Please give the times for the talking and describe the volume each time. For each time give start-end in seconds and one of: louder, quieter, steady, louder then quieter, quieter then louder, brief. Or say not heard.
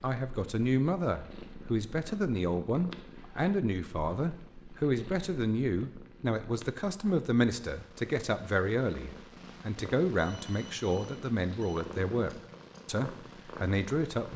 0.0-14.3 steady.